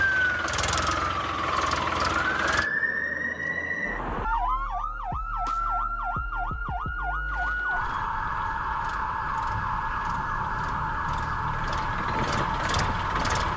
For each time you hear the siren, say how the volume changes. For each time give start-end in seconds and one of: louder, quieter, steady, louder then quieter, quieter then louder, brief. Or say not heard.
0.0-13.5 steady.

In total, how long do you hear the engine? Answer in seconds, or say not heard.
9 s.